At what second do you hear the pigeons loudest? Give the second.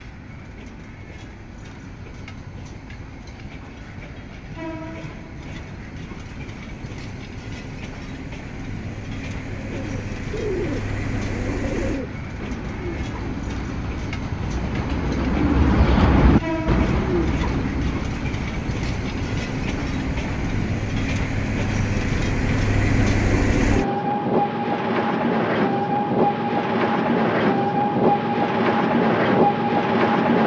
16 s.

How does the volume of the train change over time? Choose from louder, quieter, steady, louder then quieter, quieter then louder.
louder.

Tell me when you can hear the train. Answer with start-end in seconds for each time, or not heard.
0.0-30.4.